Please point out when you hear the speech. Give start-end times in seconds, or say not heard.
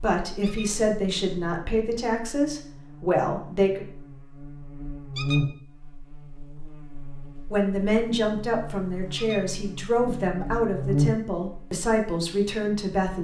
0.0-3.9, 7.5-13.1.